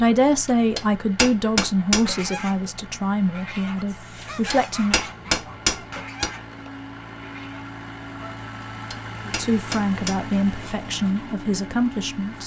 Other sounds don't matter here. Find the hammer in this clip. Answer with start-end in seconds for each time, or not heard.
0.8-2.2, 4.2-6.3, 8.6-10.3.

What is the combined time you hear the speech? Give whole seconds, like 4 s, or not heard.
8 s.